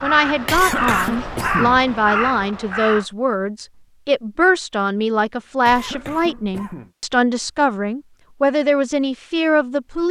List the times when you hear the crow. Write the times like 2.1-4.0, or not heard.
0.0-3.0.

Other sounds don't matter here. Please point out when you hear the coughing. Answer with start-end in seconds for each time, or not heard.
0.5-1.9, 5.7-6.9.